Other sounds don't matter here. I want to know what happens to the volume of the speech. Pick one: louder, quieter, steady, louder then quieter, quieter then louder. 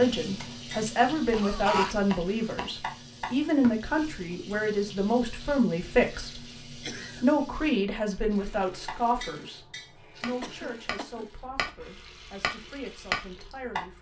quieter.